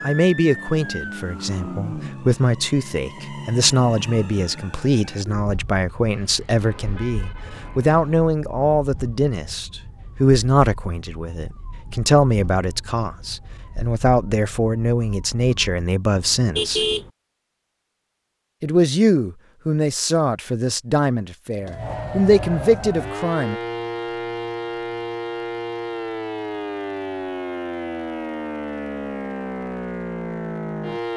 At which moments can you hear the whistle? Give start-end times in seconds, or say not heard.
not heard.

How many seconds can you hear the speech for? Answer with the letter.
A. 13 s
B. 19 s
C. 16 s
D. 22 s
D.